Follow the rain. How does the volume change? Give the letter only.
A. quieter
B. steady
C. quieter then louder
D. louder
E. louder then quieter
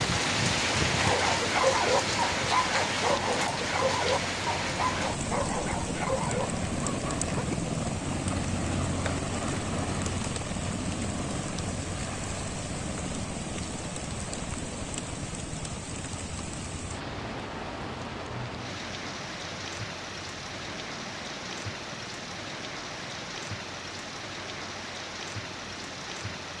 A.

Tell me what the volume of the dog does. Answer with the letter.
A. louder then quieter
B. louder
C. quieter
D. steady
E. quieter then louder
C.